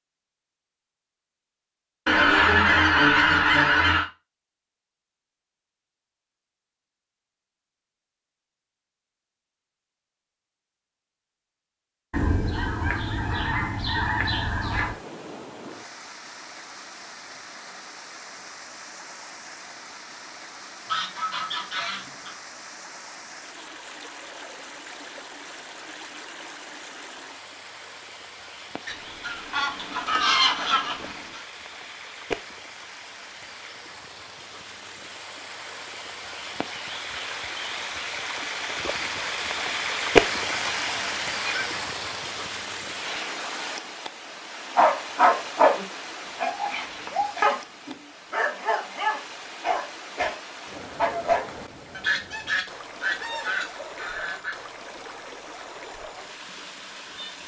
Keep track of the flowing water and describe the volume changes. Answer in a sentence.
The loudness of the flowing water goes up, then down.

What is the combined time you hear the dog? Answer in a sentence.
You can hear the dog for 7 seconds altogether.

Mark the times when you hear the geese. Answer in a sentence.
The geese can be heard from 2.0 to 4.1 s, from 12.1 to 14.9 s, from 20.9 to 22.4 s, from 28.9 to 31.4 s, from 40.2 to 41.8 s and from 51.9 to 54.6 s.